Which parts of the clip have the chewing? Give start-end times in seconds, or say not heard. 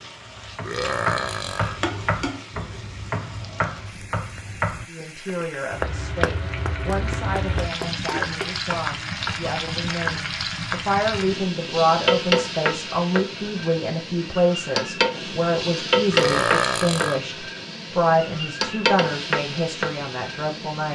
not heard.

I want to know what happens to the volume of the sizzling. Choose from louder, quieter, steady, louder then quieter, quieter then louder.
louder.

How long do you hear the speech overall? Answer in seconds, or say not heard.
16 s.